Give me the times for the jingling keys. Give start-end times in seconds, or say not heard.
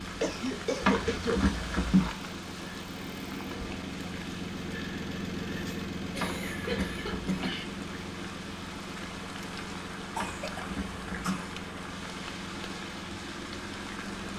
0.8-2.1, 6.2-7.5, 10.2-11.4.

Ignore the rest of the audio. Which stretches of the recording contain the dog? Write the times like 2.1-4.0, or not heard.
not heard.